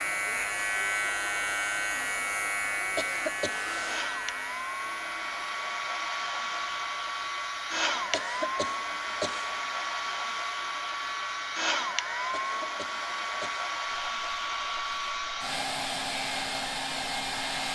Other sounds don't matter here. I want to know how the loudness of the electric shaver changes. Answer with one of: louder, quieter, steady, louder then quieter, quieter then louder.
quieter.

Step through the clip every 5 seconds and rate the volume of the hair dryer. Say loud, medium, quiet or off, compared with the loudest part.
medium, loud, loud, loud.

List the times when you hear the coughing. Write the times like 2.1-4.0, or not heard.
3.0-3.6, 8.1-9.5, 12.3-13.7.